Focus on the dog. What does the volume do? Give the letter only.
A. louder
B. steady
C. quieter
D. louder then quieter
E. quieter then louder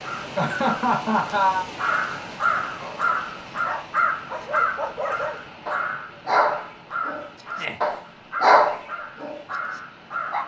D.